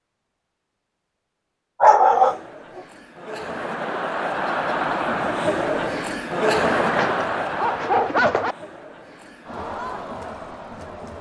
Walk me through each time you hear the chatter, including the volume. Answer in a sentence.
The chatter can be heard from 2.1 to 11.1 s, getting louder then quieter.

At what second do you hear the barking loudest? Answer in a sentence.
The loudest moment of the barking is at 2 seconds.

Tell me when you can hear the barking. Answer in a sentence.
The barking can be heard from 1.8 to 2.8 s and from 6.8 to 8.6 s.